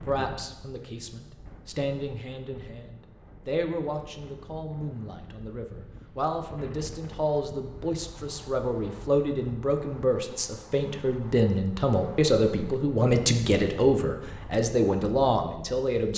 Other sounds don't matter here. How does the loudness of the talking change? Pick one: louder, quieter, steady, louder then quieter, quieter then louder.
louder.